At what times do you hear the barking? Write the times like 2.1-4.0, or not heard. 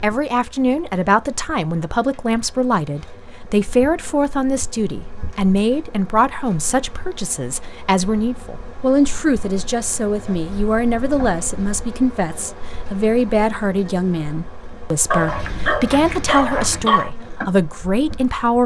15.1-17.1.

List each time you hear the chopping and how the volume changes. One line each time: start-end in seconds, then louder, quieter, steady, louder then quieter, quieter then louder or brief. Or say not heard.
not heard.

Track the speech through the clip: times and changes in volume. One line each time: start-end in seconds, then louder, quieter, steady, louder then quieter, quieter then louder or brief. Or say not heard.
0.0-18.6 steady.